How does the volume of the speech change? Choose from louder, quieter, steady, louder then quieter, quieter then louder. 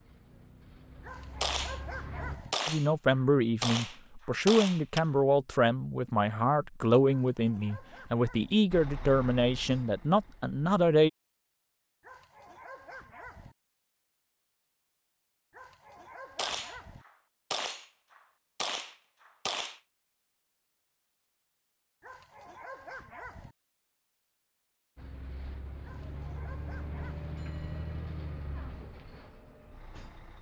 steady.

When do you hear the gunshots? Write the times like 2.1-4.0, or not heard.
1.4-5.0, 16.4-19.8.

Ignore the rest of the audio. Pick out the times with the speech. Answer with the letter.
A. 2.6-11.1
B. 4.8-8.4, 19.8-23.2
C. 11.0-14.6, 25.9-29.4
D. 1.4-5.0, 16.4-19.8
A.